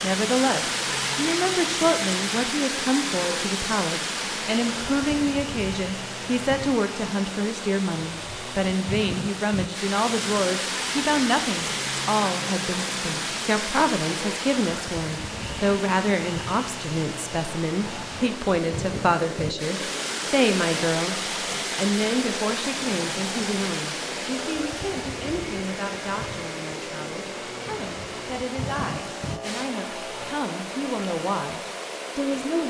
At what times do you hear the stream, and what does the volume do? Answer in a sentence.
The stream can be heard from 0.0 to 32.6 s, getting quieter.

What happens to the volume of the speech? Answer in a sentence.
The loudness of the speech goes down.